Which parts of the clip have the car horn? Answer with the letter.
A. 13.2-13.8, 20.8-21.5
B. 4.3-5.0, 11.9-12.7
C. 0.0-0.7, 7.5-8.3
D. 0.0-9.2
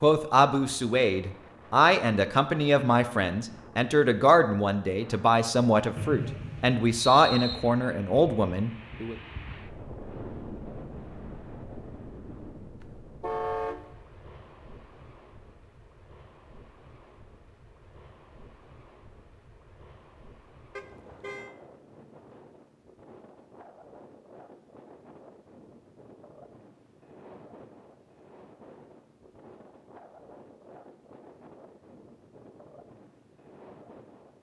A.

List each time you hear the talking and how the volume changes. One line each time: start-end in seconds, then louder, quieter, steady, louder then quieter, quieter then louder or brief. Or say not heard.
0.0-9.2 steady.